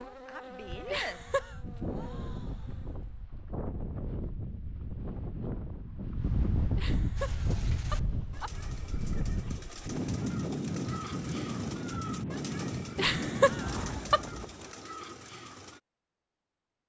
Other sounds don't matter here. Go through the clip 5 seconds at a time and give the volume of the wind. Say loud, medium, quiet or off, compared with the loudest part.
medium, loud, loud, off.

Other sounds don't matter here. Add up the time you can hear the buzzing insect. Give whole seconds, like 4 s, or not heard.
3 s.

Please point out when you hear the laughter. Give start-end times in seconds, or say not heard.
0.9-1.6, 6.8-8.5, 12.9-14.2.